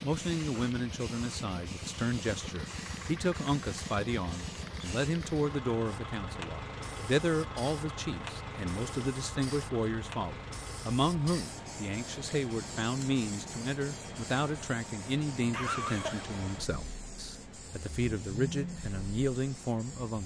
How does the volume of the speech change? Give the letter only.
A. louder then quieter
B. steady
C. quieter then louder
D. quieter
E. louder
B.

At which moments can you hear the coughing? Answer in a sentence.
The coughing can be heard from 15.5 to 16.3 s.